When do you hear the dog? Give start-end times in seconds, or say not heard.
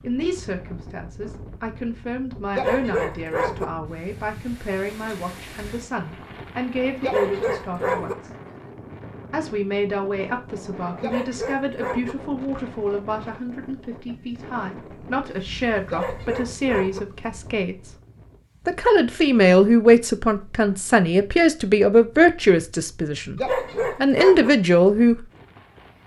2.5-3.6, 7.0-8.2, 11.0-12.2, 15.8-17.0, 23.4-24.5.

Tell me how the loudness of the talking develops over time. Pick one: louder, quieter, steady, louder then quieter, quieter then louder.
louder.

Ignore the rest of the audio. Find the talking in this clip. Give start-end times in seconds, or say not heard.
0.0-8.3, 9.3-17.9, 18.6-25.2.